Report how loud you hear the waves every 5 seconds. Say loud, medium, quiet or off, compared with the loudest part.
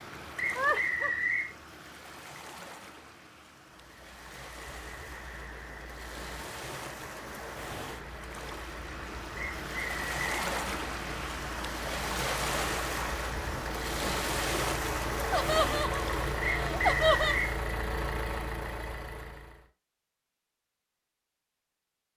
quiet, medium, loud, loud, off.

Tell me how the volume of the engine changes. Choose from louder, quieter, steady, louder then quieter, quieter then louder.
louder.